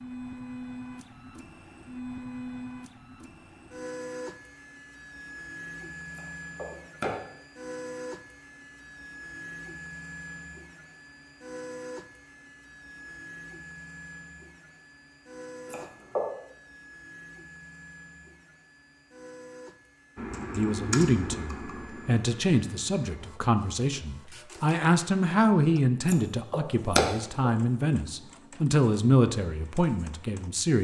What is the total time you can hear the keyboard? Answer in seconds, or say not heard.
3 s.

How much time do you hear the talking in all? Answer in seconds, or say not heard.
10 s.